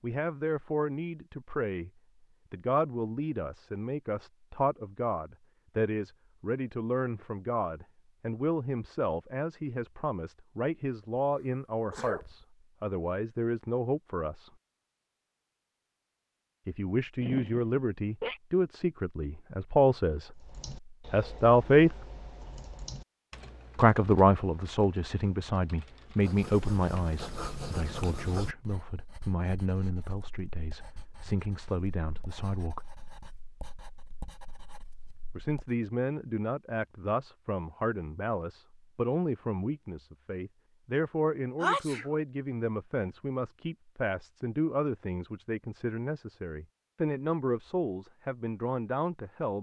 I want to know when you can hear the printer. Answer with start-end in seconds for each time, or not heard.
not heard.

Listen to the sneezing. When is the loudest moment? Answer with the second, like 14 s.
42 s.